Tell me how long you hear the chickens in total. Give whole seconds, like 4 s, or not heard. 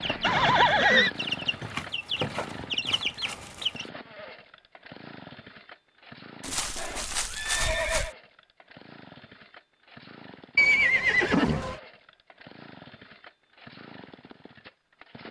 4 s.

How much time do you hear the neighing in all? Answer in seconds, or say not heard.
4 s.